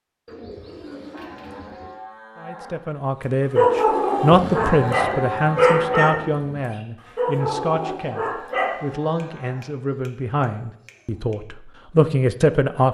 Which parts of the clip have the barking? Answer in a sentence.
The barking can be heard from 3.5 to 8.8 s.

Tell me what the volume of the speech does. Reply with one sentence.
The volume of the speech goes down, then up.